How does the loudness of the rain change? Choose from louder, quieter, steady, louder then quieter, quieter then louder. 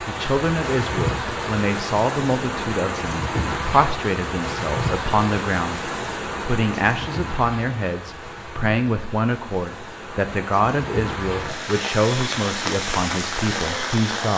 quieter then louder.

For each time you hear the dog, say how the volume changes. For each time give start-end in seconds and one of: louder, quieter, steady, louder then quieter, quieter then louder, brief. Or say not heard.
not heard.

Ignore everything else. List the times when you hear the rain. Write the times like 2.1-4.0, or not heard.
0.0-14.3.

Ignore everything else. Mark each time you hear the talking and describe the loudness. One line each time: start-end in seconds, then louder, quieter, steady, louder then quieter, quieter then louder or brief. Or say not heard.
0.0-14.3 steady.